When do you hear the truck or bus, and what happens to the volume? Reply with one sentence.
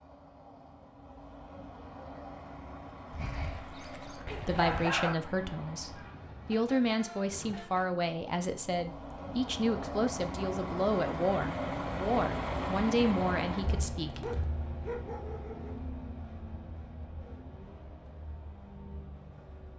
You can hear the truck or bus from 0.0 to 19.7 s, getting louder then quieter.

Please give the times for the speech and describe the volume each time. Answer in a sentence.
You can hear the speech from 4.5 to 14.3 s, at a steady volume.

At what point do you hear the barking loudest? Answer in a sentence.
The loudest moment of the barking is at 5 seconds.